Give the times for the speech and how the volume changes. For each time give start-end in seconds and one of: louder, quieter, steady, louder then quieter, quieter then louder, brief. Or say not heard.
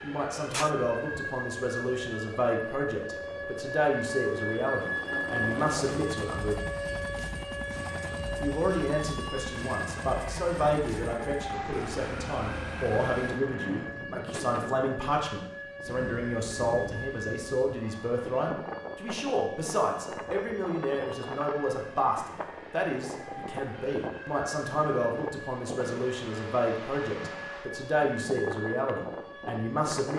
0.0-6.5 steady
8.4-30.1 steady.